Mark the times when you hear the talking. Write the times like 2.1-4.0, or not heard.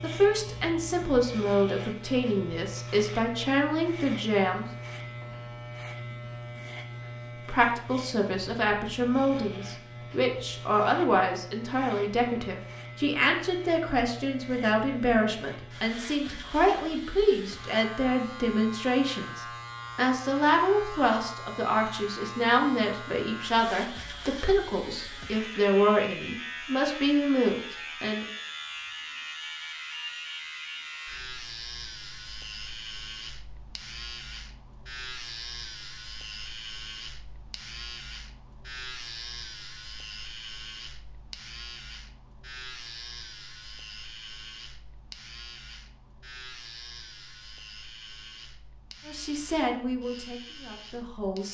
0.0-4.7, 7.5-28.2, 49.0-51.4.